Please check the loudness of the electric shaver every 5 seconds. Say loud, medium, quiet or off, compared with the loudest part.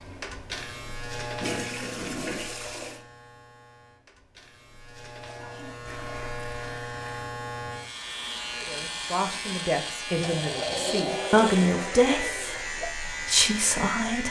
medium, loud, loud.